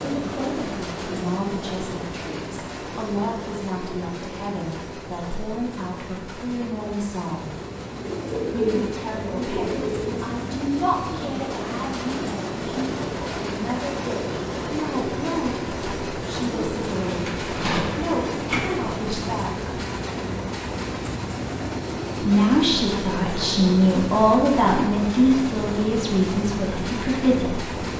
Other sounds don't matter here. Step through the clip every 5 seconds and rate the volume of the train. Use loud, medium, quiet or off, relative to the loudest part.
loud, medium, loud, loud, loud, loud.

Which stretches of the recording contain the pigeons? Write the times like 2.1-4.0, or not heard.
8.0-10.3, 16.5-18.6.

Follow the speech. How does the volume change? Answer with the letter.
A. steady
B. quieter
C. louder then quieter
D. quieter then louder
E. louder
E.